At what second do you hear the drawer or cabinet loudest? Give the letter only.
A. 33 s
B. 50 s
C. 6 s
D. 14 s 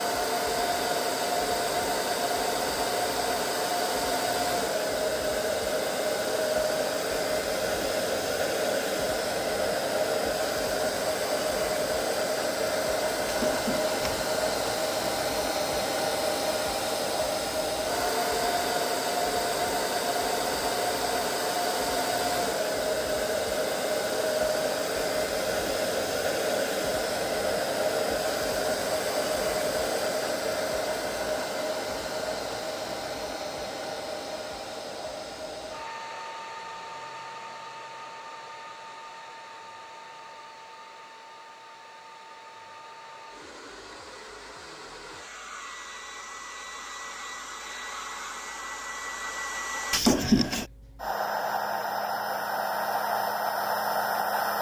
B.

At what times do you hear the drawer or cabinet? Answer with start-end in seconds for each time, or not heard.
13.2-14.2, 49.9-50.6.